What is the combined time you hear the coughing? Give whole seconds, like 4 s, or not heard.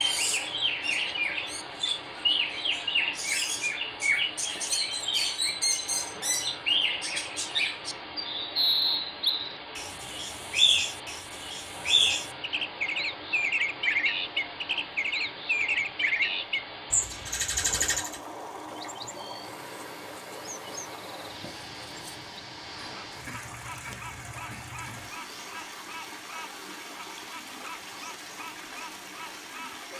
2 s.